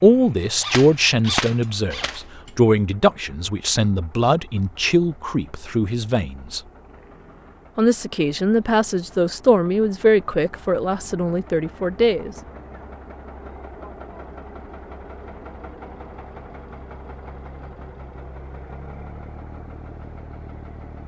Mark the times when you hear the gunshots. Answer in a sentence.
You can hear the gunshots from 0.6 to 2.5 s.